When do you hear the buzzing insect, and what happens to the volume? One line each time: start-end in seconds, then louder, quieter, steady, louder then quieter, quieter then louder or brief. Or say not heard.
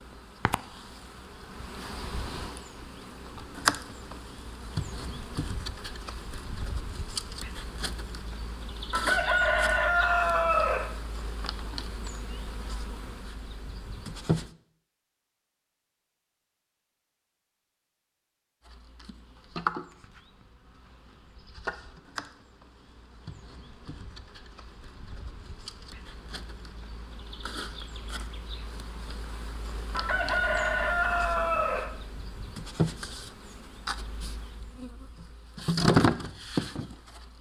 0.0-14.5 louder then quieter
18.6-37.3 quieter then louder.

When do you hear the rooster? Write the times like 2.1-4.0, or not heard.
8.9-10.9, 29.9-31.9.